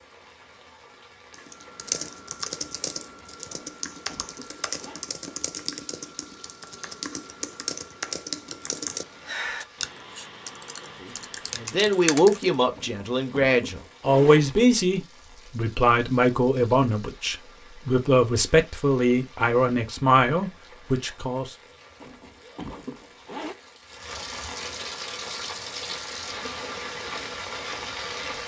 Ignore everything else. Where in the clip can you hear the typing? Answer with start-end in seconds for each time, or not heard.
1.3-12.6.